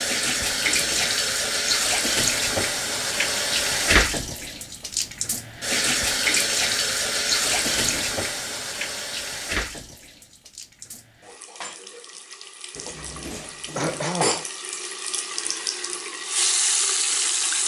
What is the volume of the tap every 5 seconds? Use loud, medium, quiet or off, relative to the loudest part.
loud, loud, medium, loud.